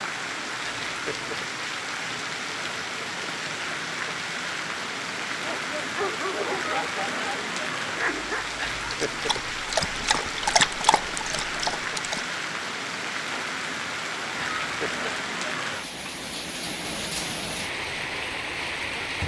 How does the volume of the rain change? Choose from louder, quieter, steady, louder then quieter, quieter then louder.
steady.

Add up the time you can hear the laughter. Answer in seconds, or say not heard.
3 s.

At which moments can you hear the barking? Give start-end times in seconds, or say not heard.
5.3-12.2.